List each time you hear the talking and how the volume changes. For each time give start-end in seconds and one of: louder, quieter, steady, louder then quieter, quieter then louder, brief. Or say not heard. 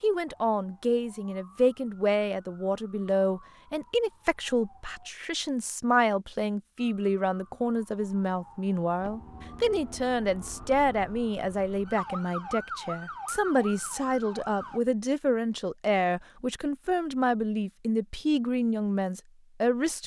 0.0-20.0 steady.